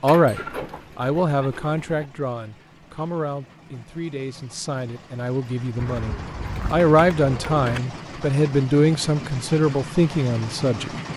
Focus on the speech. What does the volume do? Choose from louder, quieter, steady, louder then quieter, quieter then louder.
quieter then louder.